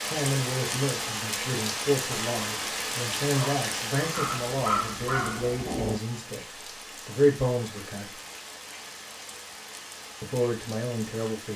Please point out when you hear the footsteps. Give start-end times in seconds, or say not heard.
not heard.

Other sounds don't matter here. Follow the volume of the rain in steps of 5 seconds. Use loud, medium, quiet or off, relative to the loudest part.
loud, medium, medium.